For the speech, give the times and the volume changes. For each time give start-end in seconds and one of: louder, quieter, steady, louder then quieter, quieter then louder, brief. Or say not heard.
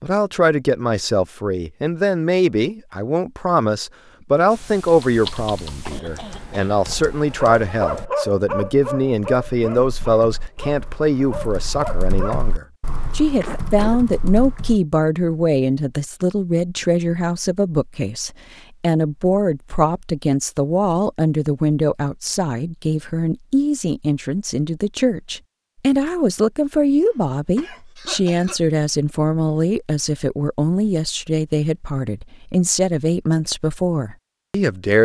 0.0-34.9 steady.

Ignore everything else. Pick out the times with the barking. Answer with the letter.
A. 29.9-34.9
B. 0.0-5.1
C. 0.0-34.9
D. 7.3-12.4
D.